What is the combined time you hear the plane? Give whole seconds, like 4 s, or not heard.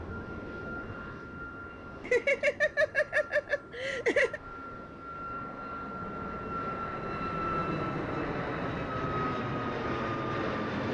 11 s.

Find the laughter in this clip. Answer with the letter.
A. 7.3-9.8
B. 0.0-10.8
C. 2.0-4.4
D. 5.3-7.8
C.